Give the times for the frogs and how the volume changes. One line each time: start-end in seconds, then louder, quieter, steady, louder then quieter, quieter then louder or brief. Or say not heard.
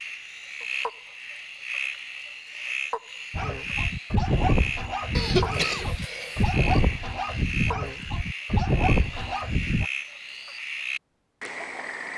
0.0-12.1 steady.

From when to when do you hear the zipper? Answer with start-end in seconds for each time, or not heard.
not heard.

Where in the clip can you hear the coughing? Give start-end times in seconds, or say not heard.
5.2-6.5.